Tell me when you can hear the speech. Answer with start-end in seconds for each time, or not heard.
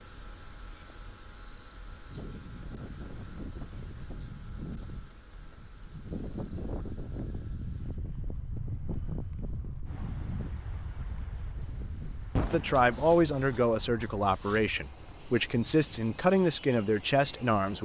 12.5-17.7.